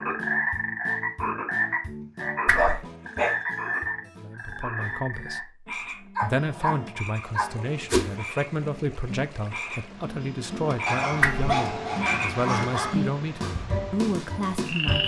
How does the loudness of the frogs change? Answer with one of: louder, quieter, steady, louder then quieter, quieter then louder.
quieter then louder.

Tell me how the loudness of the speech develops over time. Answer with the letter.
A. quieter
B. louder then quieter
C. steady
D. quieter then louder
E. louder
C.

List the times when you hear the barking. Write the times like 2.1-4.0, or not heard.
2.5-3.4, 6.2-7.7, 10.8-13.0.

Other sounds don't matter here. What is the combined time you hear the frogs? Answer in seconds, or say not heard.
15 s.